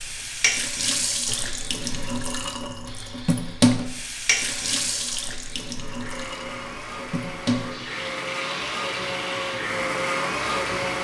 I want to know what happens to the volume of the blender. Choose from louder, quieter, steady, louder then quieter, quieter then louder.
louder.